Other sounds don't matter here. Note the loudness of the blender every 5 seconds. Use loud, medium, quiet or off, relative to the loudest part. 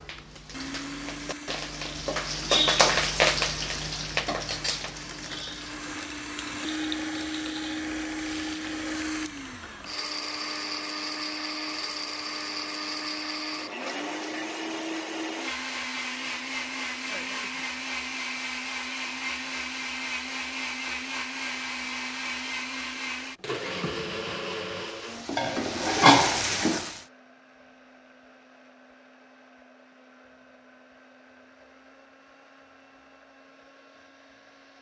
medium, loud, loud, loud, loud, quiet, quiet.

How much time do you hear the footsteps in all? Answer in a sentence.
The footsteps can't be heard in this clip.